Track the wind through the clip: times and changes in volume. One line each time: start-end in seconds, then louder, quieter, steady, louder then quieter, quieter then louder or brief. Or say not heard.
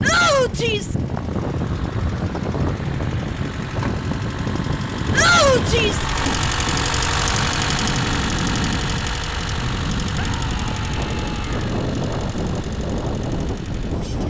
0.0-14.2 steady.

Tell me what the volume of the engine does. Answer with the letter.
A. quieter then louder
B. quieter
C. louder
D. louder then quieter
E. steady
D.